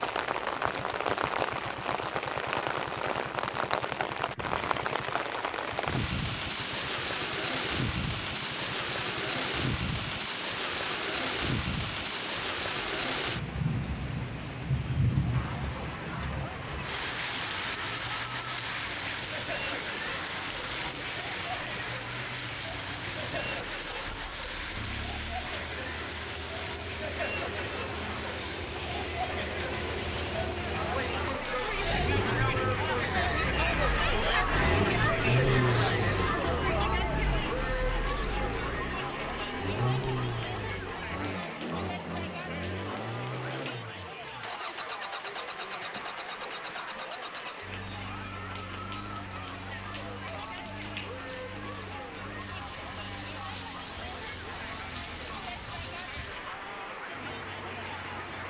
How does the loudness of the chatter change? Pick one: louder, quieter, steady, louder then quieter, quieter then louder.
louder then quieter.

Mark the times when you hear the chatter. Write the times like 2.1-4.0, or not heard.
15.3-58.4.